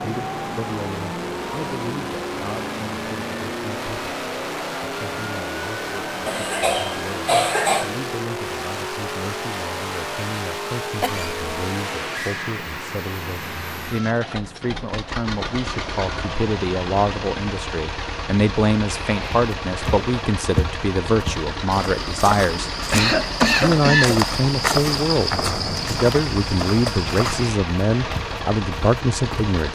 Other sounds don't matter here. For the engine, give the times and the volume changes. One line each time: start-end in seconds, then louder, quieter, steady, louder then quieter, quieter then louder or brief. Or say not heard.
0.0-29.7 steady.